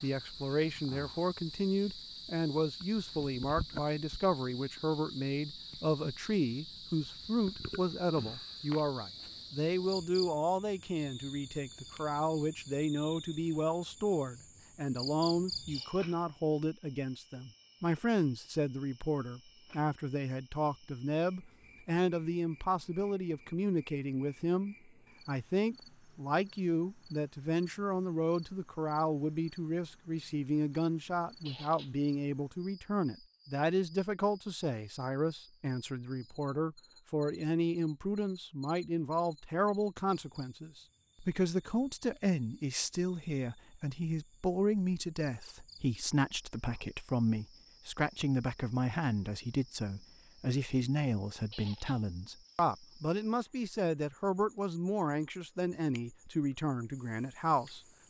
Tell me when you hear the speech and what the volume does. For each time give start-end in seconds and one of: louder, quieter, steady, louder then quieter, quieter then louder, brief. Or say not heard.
0.0-57.8 steady.